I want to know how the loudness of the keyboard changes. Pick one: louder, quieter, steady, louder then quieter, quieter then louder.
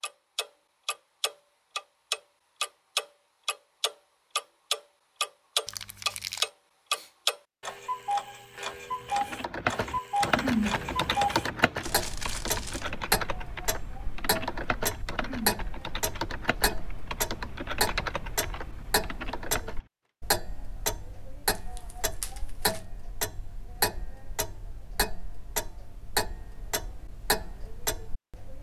quieter.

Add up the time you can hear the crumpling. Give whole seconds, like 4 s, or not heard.
3 s.